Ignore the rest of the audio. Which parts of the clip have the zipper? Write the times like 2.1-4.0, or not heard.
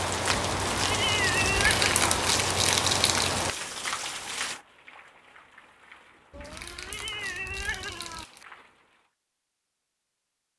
not heard.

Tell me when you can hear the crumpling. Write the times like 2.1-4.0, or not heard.
1.4-3.5, 6.4-8.4.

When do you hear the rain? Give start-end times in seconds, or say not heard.
0.0-9.1.